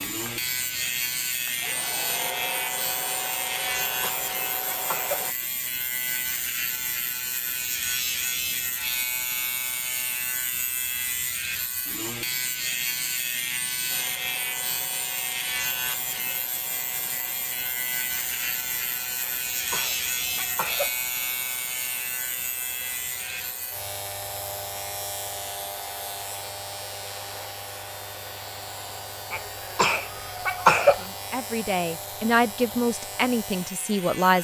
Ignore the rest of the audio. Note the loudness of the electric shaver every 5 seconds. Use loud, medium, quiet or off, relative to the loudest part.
loud, loud, loud, loud, loud, medium, medium.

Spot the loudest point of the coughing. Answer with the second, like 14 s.
31 s.